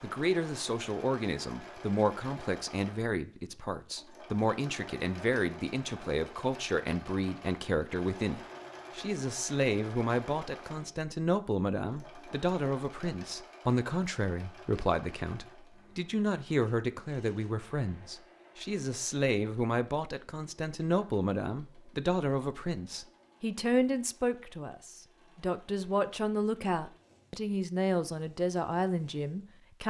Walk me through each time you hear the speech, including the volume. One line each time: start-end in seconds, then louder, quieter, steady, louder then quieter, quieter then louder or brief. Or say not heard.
0.0-29.8 steady.